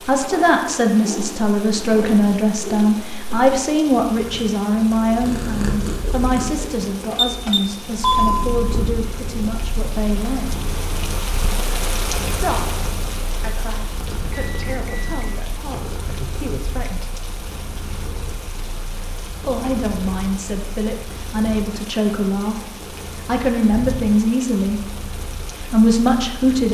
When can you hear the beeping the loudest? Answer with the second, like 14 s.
8 s.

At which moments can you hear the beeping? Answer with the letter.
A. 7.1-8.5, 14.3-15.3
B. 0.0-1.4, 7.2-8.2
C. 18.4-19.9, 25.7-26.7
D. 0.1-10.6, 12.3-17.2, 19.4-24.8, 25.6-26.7
A.